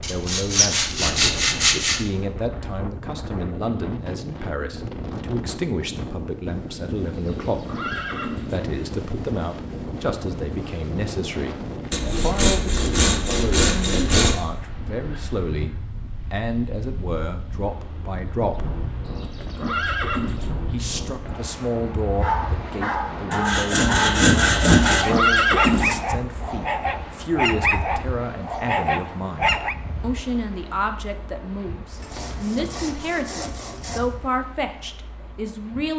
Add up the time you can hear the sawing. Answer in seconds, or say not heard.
8 s.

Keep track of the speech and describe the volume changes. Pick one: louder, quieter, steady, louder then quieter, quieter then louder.
steady.